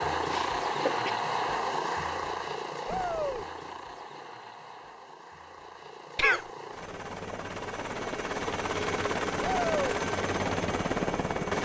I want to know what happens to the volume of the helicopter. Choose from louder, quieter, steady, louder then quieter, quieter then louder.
quieter then louder.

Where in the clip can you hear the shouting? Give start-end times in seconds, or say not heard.
2.9-3.5, 9.4-10.0.